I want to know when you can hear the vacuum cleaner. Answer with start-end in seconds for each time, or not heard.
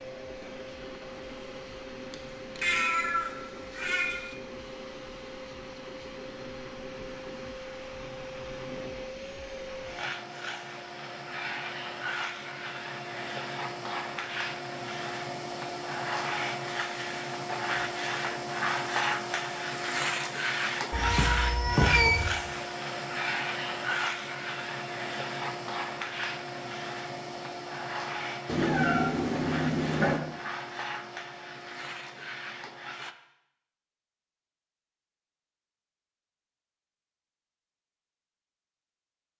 0.0-33.1.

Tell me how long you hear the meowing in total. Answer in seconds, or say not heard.
5 s.